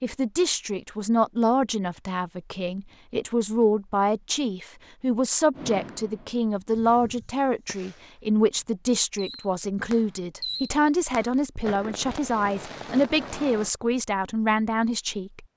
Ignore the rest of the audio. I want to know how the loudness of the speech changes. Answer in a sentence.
The loudness of the speech stays about the same.